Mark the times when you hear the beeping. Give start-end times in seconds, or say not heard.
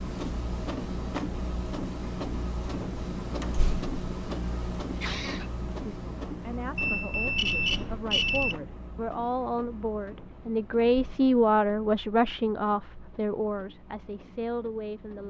6.8-8.6.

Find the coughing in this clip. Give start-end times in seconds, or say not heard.
5.0-5.5.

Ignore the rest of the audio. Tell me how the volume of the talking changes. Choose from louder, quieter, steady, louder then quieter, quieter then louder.
louder then quieter.